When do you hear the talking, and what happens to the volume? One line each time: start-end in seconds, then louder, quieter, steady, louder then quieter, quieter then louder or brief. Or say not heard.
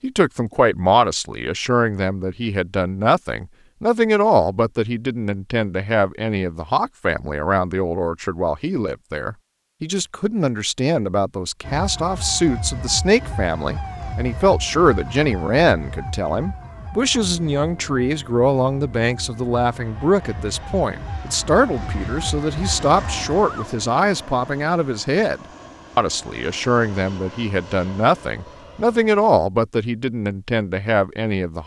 0.0-31.6 steady.